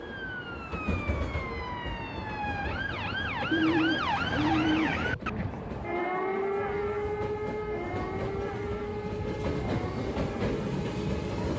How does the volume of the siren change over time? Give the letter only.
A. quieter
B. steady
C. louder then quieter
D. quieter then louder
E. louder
C.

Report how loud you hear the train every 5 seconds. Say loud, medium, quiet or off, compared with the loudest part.
medium, medium, loud.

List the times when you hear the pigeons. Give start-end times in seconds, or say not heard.
3.5-5.0.